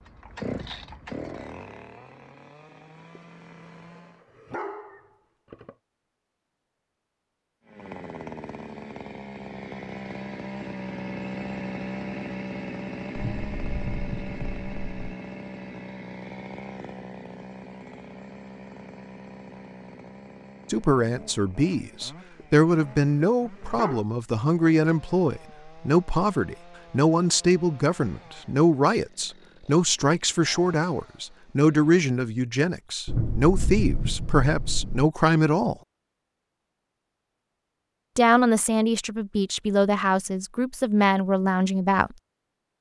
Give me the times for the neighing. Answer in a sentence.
You can't hear the neighing here.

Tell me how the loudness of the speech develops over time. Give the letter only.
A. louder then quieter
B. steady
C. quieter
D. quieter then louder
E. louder
B.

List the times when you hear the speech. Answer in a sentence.
The speech can be heard from 20.7 to 35.8 s and from 38.1 to 42.1 s.